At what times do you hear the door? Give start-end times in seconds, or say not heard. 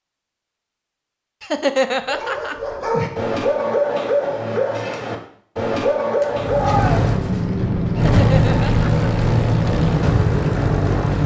not heard.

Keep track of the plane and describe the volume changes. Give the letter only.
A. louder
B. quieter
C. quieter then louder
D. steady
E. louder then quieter
D.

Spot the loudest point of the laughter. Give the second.
2 s.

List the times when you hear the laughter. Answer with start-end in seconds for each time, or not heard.
1.4-2.5, 8.0-9.1.